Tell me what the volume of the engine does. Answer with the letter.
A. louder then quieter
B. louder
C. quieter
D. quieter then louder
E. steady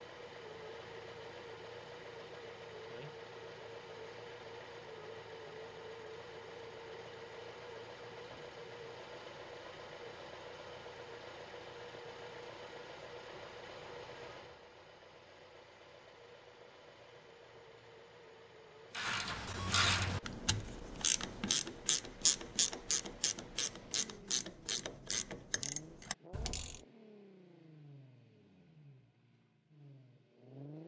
C.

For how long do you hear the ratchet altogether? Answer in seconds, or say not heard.
8 s.